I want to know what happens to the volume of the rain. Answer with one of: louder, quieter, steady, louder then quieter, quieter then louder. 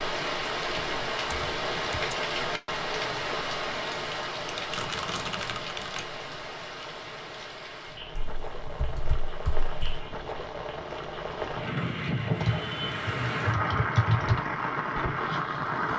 quieter then louder.